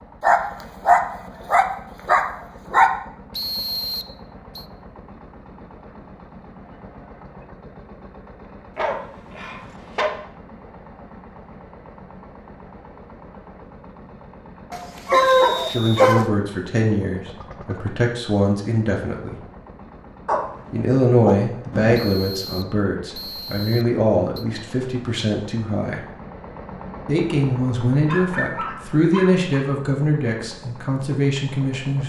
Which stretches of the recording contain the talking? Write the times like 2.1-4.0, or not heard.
15.7-19.4, 20.7-26.0, 27.1-32.0.